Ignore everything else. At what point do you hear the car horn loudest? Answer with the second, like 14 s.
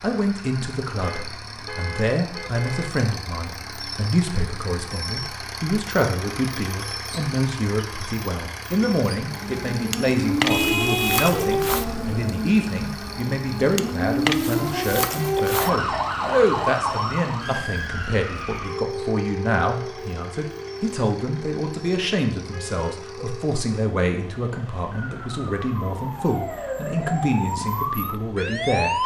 11 s.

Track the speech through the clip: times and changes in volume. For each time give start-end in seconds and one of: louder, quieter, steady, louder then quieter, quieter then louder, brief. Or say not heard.
0.0-29.0 steady.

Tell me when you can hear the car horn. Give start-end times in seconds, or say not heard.
1.0-2.9, 10.5-12.2, 22.5-23.1.